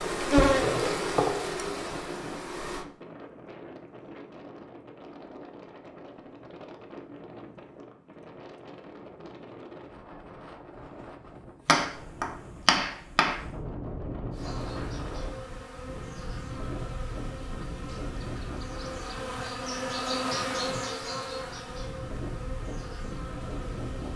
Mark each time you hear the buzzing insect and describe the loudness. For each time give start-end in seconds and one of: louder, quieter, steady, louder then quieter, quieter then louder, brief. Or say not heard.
0.0-2.9 brief
14.3-24.1 louder then quieter.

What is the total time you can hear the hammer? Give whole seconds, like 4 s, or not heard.
2 s.